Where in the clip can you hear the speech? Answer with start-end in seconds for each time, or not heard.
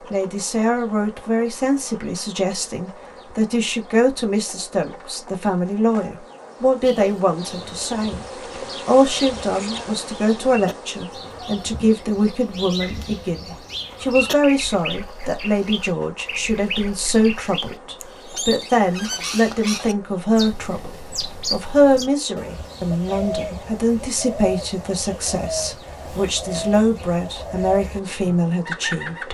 0.1-8.2, 8.8-29.2.